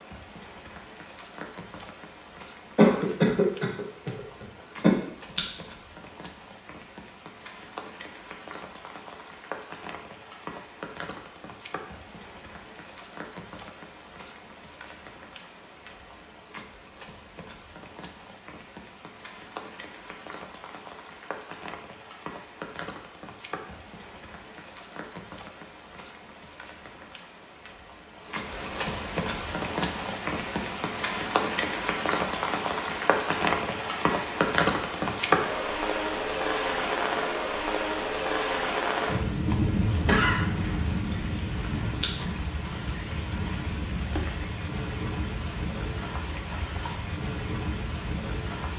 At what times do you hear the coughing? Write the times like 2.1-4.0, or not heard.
2.8-5.4, 40.0-41.2.